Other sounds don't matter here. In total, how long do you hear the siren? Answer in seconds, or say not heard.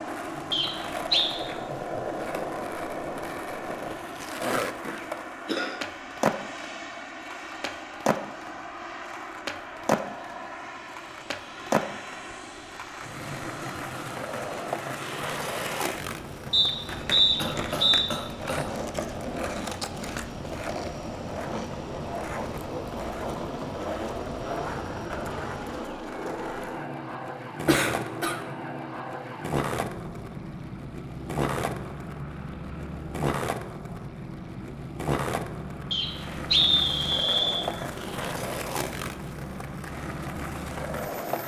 not heard.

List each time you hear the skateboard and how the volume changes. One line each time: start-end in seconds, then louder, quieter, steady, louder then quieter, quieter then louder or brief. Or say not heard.
0.0-41.4 steady.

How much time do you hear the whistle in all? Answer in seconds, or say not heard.
4 s.